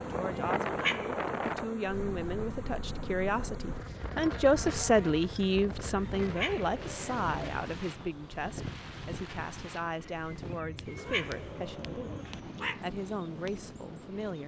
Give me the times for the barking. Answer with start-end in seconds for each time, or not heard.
not heard.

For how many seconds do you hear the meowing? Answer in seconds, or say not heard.
4 s.